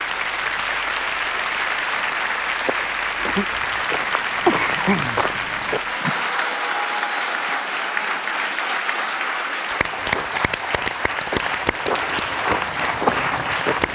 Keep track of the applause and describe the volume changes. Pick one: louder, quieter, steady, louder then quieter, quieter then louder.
steady.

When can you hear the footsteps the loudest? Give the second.
13 s.